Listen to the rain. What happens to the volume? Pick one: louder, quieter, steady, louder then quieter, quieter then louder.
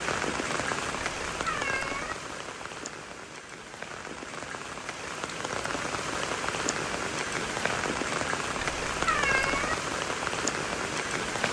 quieter then louder.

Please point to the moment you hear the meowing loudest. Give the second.
9 s.